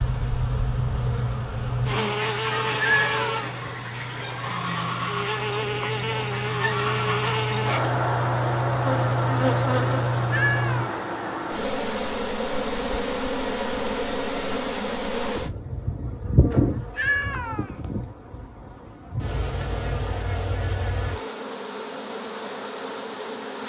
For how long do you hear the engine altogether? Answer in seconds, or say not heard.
11 s.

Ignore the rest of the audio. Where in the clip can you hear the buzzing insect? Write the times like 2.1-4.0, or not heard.
0.0-23.6.